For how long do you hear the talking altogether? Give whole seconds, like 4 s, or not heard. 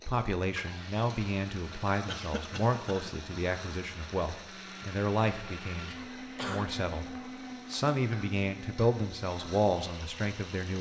10 s.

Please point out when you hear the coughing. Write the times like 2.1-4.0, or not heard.
2.0-3.1, 5.8-6.7.